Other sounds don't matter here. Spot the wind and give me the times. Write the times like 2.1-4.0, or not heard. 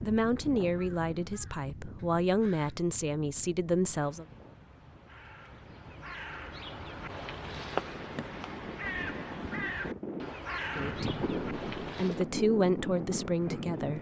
0.0-13.9.